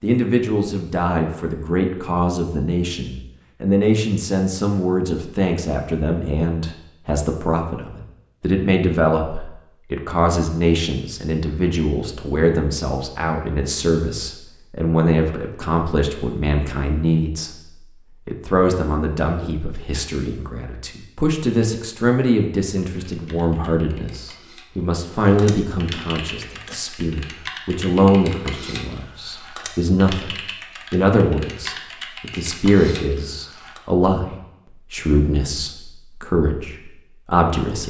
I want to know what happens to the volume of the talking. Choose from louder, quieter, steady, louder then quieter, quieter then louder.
steady.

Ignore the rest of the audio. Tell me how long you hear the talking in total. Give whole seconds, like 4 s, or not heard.
38 s.